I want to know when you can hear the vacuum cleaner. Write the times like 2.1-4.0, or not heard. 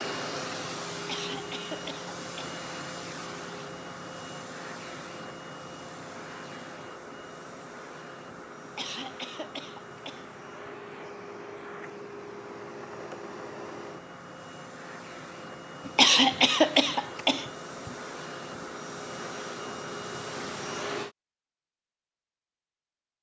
0.0-21.1.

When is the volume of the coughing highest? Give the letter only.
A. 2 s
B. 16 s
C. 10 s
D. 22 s
B.